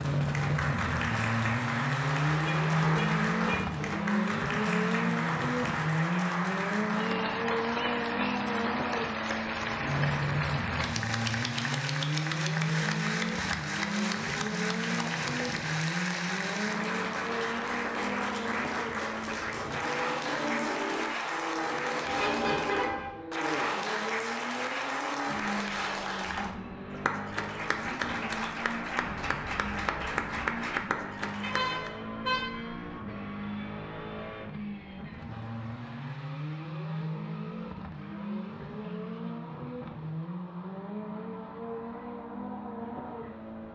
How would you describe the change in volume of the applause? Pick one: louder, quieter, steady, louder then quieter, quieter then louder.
steady.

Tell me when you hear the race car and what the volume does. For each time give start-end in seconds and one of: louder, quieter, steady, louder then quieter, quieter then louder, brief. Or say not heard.
0.0-43.7 quieter.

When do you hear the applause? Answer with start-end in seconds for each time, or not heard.
0.0-32.0.